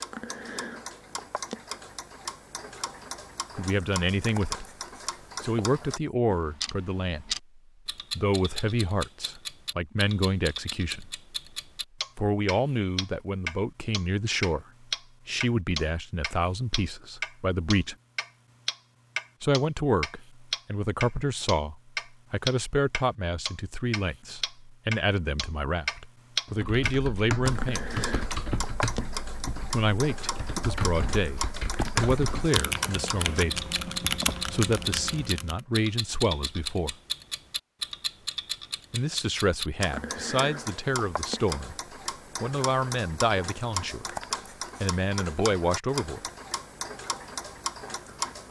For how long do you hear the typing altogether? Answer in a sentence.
You can hear the typing for 9 seconds altogether.